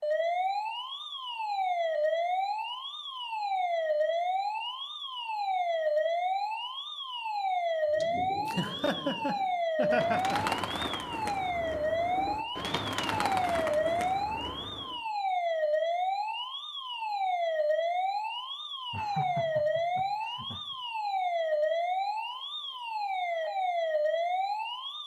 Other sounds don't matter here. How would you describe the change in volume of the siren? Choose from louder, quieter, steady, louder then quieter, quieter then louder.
steady.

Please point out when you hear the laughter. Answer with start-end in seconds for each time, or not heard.
8.4-10.4, 18.9-20.8.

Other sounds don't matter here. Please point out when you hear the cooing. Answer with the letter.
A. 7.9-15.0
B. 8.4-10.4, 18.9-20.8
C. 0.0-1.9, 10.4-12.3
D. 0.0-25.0
A.